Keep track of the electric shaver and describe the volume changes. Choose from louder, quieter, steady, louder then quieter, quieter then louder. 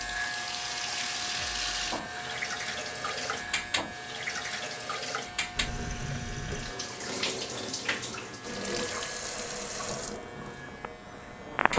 quieter.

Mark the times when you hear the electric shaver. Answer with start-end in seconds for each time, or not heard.
0.0-11.7.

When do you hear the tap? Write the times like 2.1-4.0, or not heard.
0.0-11.7.